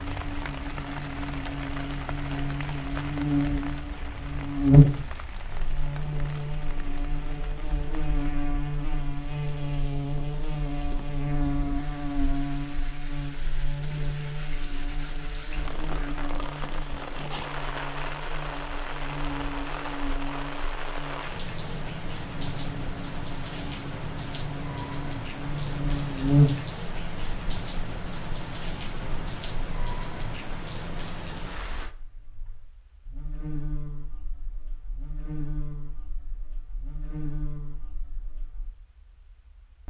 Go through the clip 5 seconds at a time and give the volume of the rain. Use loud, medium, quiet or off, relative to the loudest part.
loud, medium, medium, loud, loud, loud, loud, off.